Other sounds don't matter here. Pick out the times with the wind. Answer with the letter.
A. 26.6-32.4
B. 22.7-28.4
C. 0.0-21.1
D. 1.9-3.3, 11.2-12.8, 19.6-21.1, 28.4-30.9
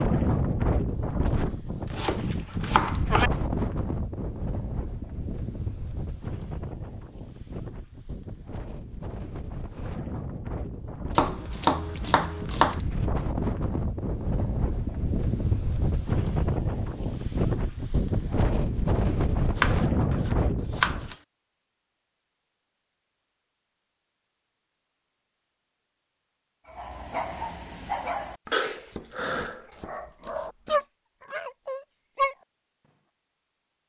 C.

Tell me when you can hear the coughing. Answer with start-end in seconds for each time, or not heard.
not heard.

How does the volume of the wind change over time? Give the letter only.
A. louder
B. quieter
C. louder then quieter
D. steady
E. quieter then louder
E.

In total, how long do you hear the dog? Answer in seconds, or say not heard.
6 s.